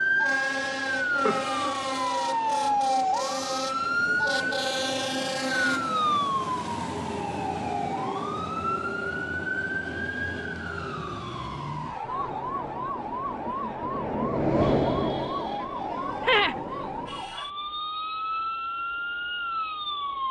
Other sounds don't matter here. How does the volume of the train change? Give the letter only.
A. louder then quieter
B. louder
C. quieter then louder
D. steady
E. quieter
A.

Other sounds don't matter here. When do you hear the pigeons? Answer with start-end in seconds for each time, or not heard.
not heard.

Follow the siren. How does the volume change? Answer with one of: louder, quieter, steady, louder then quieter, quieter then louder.
quieter.